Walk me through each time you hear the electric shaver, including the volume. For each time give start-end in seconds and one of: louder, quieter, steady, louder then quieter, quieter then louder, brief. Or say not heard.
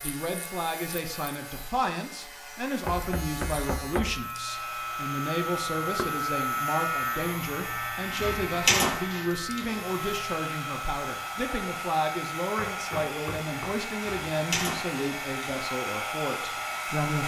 0.0-17.1 louder then quieter.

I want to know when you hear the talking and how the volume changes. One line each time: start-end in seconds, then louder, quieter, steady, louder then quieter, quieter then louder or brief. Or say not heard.
0.0-17.2 steady.